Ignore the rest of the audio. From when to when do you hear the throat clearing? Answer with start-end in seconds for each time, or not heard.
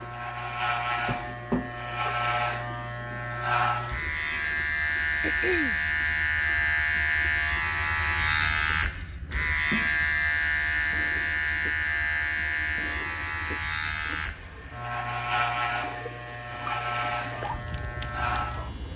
5.2-5.8.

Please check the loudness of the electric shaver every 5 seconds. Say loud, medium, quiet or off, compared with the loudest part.
loud, loud, loud, medium.